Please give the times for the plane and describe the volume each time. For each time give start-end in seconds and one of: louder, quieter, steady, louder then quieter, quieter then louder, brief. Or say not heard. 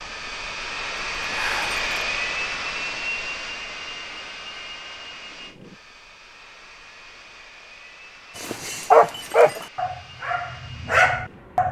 0.0-11.6 quieter.